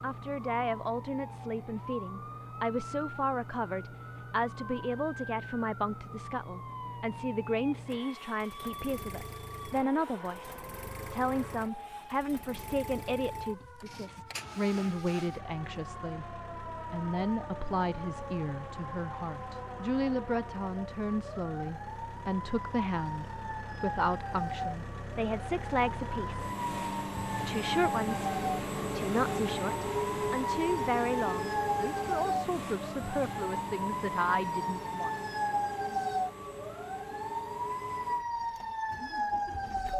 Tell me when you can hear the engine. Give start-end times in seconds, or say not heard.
0.0-39.9.